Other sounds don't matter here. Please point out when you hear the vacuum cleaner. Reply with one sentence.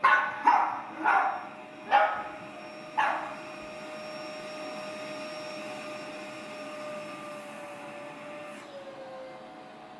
You can hear the vacuum cleaner from 0.0 to 9.9 s.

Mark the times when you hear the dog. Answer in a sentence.
You can hear the dog from 0.0 to 3.5 s.